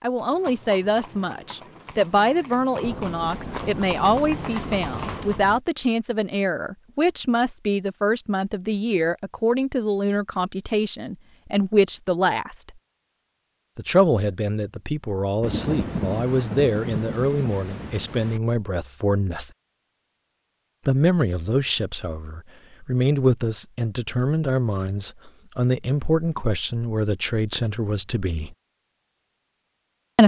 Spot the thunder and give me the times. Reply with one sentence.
The thunder can be heard from 2.8 to 5.6 s and from 15.4 to 18.4 s.